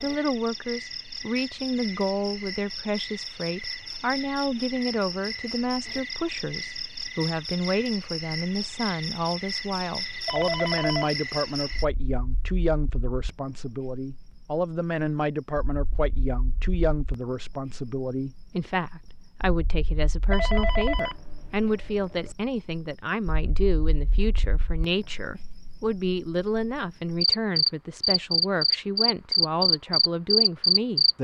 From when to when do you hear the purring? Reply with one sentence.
You can't hear the purring here.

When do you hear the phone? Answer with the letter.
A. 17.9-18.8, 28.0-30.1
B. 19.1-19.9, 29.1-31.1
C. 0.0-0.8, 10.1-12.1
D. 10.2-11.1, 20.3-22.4
D.